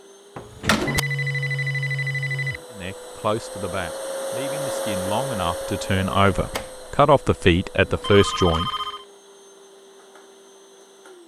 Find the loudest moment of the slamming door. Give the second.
1 s.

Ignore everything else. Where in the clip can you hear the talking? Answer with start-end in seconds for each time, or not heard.
2.8-8.7.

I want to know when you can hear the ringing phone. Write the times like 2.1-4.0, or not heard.
0.8-2.6, 7.8-9.1.